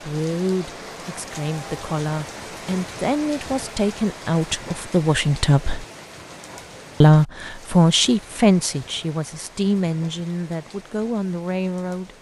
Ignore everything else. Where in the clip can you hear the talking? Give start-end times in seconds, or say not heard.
0.0-5.8, 7.0-12.1.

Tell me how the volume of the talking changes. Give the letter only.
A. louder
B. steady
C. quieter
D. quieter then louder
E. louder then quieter
E.